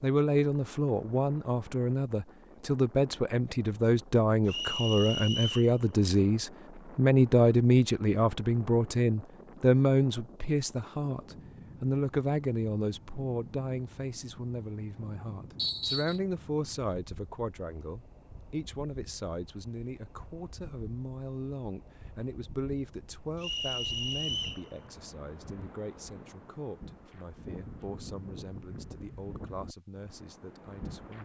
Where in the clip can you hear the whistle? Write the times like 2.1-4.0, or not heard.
4.5-5.7, 15.6-16.2, 23.4-24.6.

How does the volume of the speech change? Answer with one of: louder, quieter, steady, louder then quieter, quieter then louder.
quieter.